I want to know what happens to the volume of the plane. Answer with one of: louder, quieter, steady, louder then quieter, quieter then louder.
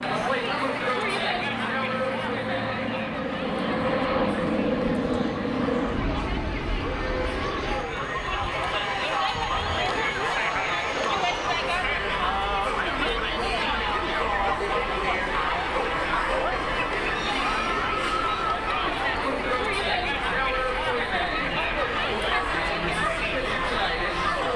quieter.